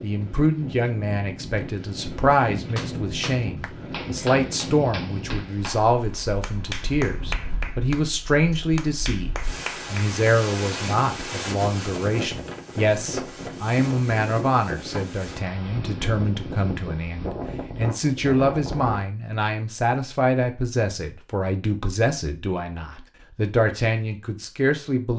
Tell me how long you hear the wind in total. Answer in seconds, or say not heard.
19 s.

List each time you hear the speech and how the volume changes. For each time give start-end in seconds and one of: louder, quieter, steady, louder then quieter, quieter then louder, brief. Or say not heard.
0.0-25.1 steady.